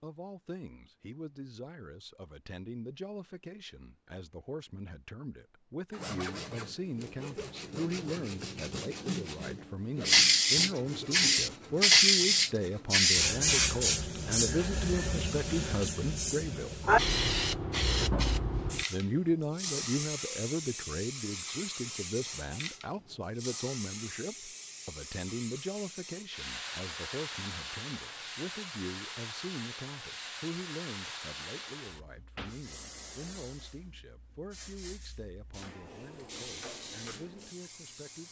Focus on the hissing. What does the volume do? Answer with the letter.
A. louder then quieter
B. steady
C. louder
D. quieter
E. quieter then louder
D.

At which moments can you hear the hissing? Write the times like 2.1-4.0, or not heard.
10.1-38.2.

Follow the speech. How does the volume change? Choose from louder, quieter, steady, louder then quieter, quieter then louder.
louder then quieter.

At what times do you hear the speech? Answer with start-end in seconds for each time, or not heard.
0.0-16.8, 18.9-38.2.